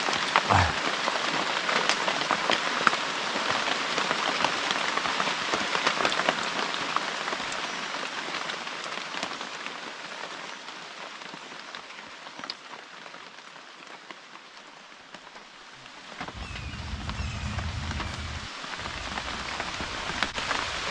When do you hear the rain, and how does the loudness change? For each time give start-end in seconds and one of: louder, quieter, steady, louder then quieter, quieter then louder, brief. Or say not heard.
0.0-20.8 quieter then louder.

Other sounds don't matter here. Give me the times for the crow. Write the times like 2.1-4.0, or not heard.
16.3-20.8.